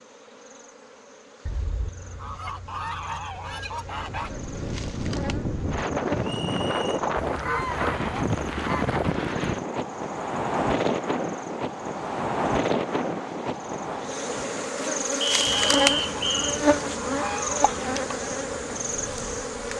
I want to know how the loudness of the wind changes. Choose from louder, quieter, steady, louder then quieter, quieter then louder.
quieter.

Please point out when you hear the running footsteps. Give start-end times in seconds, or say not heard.
not heard.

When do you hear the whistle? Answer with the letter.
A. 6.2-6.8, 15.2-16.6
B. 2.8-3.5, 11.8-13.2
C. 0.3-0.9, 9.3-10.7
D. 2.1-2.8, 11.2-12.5
A.